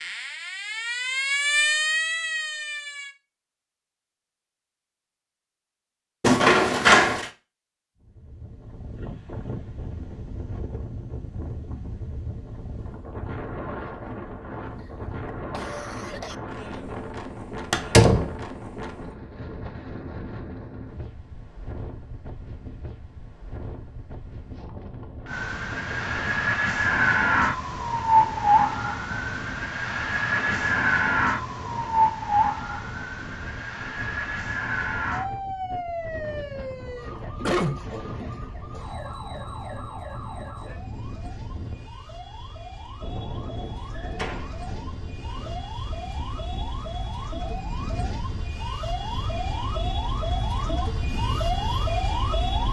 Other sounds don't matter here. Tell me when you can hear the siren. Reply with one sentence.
The siren can be heard from 0.0 to 3.1 s and from 25.2 to 52.6 s.